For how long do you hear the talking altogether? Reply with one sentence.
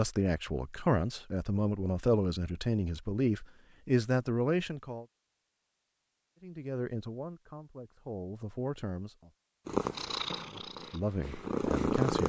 You can hear the talking for 10 seconds altogether.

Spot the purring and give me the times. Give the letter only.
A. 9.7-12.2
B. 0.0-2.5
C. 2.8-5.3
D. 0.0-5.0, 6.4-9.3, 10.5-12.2
A.